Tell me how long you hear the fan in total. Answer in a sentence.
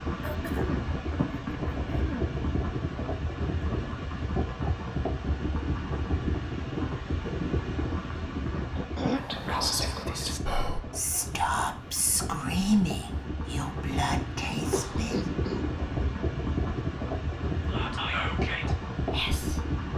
You can hear the fan for 20 seconds altogether.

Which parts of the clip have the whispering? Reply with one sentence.
The whispering can be heard from 9.1 to 15.3 s and from 17.7 to 19.9 s.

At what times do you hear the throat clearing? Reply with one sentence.
The throat clearing can be heard from 0.2 to 2.4 s, from 8.6 to 9.2 s and from 14.7 to 15.7 s.